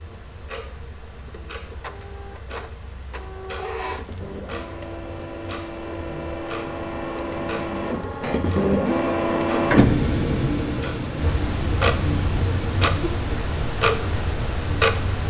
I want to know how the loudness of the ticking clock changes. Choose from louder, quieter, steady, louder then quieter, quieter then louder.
louder.